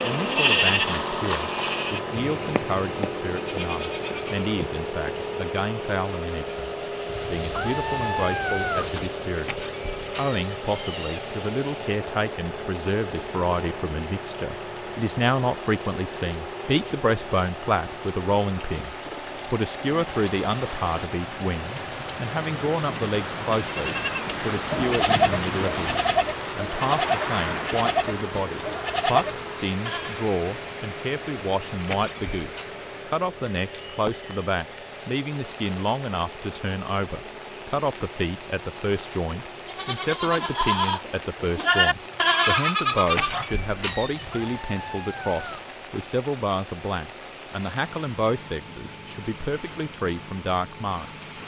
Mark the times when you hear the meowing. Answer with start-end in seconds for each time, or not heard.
7.0-9.1, 43.9-45.6.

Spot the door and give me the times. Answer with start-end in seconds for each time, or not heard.
9.3-11.2, 31.8-32.6, 43.0-44.2.